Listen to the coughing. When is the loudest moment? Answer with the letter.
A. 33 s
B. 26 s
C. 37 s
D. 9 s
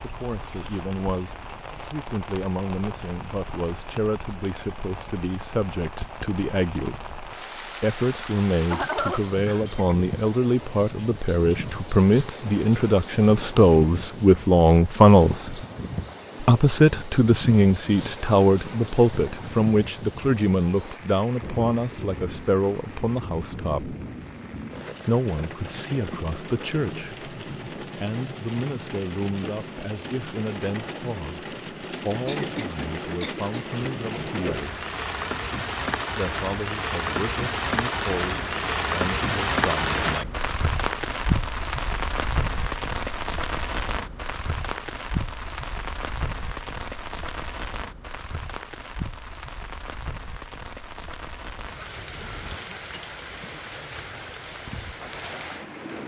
D.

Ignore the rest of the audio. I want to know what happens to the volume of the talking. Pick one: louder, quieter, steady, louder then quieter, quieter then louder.
louder then quieter.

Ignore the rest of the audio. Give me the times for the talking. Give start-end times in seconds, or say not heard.
0.0-15.6, 16.4-23.9, 25.1-34.9, 36.1-40.5.